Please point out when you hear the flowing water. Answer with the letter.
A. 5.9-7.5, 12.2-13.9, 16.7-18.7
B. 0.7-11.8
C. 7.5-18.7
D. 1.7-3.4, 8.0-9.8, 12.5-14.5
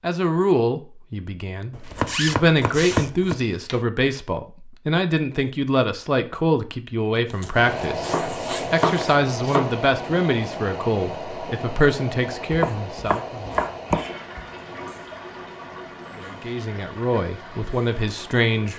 C.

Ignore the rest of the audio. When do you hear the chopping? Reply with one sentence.
You can hear the chopping from 1.7 to 3.4 s, from 8.0 to 9.8 s and from 12.5 to 14.5 s.